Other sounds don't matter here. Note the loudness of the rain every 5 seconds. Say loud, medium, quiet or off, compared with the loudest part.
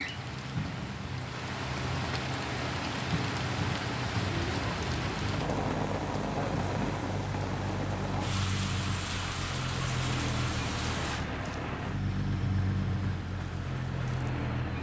loud, loud, medium.